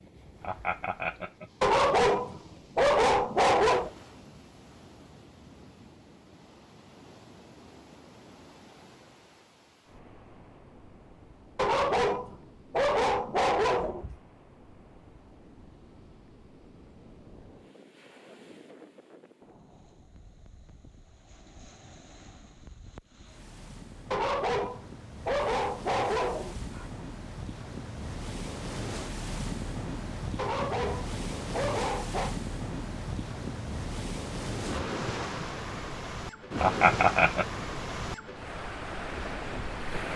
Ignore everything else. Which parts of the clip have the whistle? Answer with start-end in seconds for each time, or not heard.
not heard.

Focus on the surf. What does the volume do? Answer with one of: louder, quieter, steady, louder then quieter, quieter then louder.
louder.